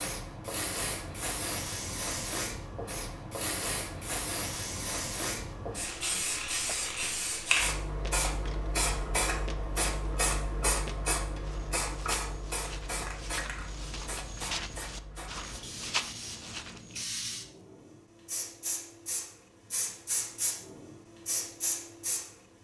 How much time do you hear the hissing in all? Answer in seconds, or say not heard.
22 s.